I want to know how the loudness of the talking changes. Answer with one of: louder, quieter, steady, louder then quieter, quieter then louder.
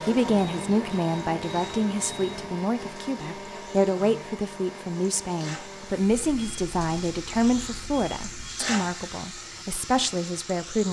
steady.